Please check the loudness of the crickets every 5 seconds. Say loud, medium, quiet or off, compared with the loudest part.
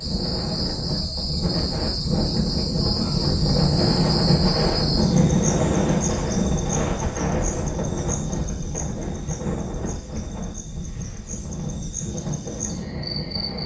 loud, medium, medium.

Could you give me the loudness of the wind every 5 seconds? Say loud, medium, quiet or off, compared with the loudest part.
loud, loud, medium.